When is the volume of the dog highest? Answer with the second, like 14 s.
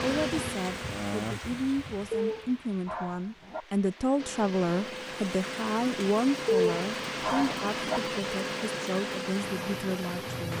7 s.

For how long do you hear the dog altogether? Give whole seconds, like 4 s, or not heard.
3 s.